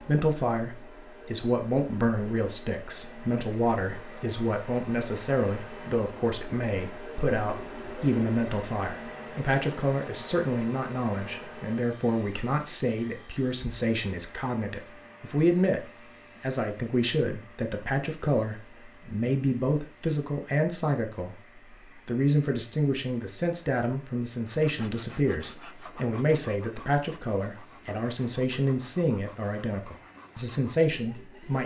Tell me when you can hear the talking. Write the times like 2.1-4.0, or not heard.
0.0-31.6.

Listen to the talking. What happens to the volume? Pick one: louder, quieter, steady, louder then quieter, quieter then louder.
steady.